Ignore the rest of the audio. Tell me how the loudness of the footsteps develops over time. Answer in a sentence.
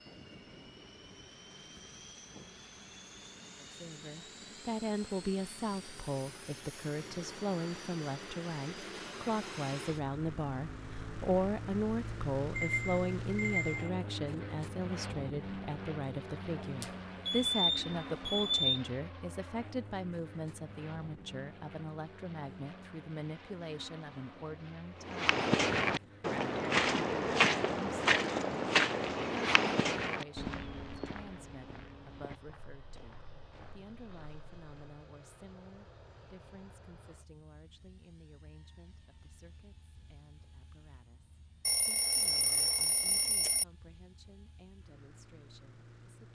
The volume of the footsteps goes down.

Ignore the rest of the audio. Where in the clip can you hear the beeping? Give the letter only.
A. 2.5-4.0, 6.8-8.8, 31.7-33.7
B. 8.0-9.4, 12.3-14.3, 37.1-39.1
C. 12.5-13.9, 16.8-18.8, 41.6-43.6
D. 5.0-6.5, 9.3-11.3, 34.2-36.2
C.